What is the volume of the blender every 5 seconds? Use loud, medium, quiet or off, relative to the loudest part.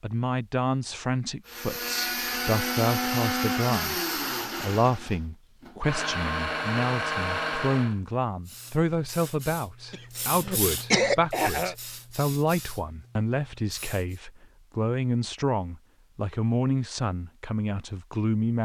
loud, loud, off, off.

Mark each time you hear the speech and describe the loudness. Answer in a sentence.
You can hear the speech from 0.0 to 18.5 s, at a steady volume.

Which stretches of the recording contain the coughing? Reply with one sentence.
You can hear the coughing from 9.9 to 11.8 s.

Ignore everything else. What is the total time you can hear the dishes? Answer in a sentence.
You can't hear the dishes here.